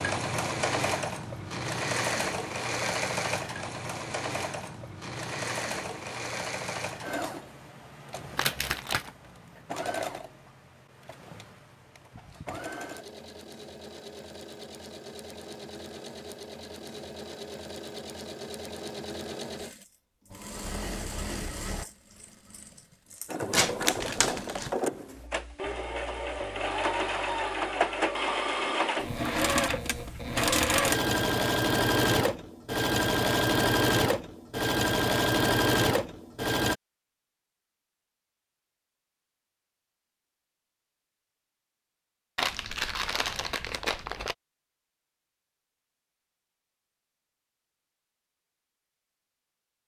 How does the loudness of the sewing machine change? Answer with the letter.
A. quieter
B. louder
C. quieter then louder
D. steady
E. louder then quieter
C.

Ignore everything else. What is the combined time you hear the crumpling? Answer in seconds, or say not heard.
4 s.